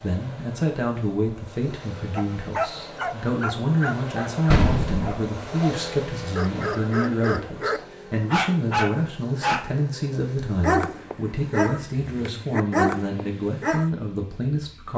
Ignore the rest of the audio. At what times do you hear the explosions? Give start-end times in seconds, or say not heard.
4.5-5.1.